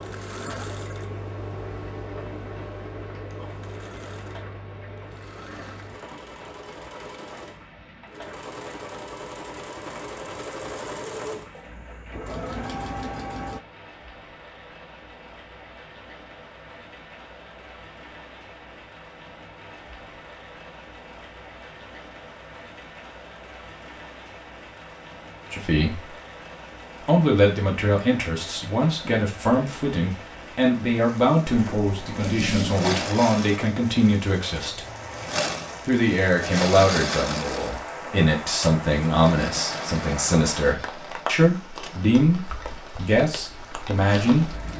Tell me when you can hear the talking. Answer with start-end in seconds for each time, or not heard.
25.5-26.1, 27.0-34.9, 35.9-44.7.